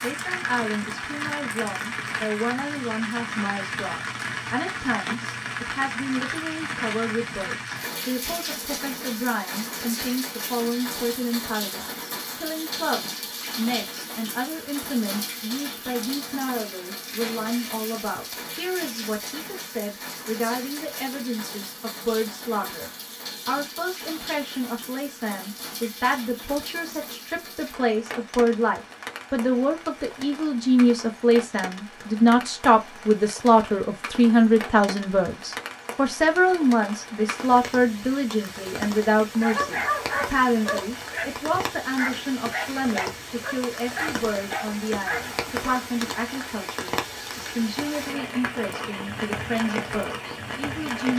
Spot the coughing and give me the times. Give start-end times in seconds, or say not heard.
not heard.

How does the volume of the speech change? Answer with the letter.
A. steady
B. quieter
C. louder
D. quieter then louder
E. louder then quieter
E.